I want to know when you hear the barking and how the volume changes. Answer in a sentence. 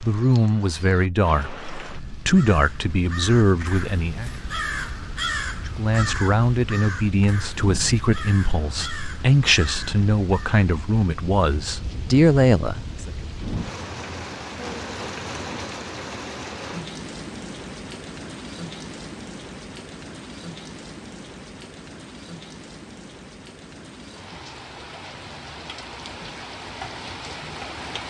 The barking can't be heard in this clip.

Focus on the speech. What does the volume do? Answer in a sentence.
The volume of the speech stays about the same.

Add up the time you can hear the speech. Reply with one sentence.
You can hear the speech for 12 seconds altogether.